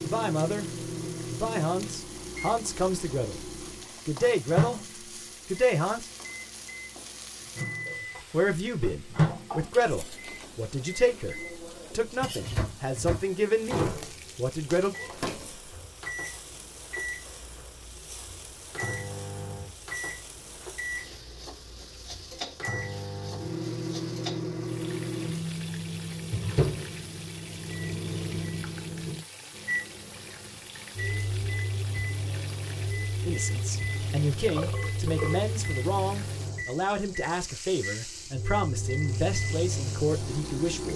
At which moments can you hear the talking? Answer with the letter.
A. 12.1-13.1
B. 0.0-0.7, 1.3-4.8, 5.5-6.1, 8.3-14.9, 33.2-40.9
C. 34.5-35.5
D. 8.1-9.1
B.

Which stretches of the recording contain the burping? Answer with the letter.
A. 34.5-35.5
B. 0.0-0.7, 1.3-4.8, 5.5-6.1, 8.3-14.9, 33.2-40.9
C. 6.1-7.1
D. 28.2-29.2
A.